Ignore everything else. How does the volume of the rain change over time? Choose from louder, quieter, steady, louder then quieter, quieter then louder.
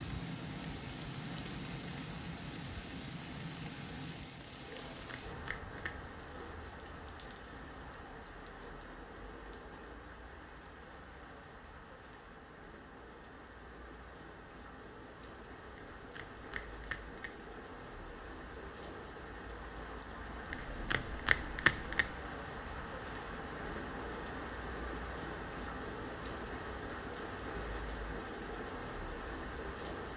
quieter then louder.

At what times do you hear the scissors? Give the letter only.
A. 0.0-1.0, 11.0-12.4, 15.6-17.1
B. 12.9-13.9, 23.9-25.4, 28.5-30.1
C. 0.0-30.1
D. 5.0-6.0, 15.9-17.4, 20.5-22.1
D.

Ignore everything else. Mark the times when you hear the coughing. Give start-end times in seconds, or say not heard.
not heard.